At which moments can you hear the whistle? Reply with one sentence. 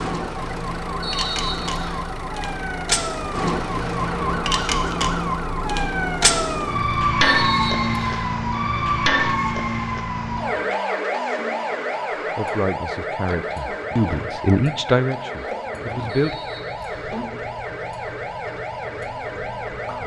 You can hear the whistle from 1.0 to 2.0 s, from 7.3 to 8.3 s and from 16.1 to 17.1 s.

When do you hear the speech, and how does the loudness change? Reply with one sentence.
The speech can be heard from 12.3 to 16.4 s, getting louder then quieter.